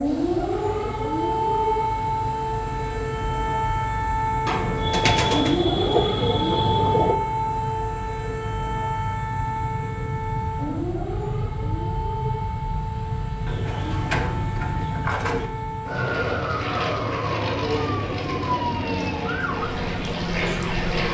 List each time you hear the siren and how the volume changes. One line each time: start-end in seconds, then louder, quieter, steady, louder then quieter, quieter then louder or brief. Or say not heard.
0.0-21.0 quieter.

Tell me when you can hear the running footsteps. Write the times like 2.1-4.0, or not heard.
not heard.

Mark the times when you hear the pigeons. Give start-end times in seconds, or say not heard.
4.5-7.2, 13.4-15.4.